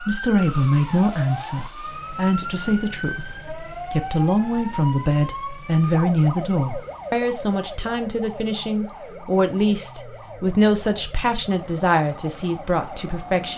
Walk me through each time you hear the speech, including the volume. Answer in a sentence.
You can hear the speech from 0.0 to 13.5 s, at a steady volume.